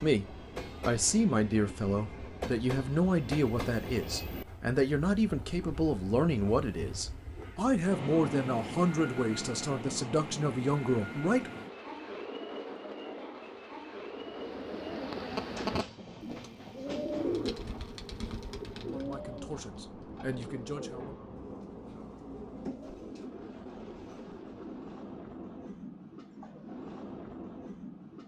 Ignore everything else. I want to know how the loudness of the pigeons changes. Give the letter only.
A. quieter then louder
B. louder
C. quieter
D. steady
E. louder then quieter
C.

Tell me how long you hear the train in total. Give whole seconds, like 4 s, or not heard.
28 s.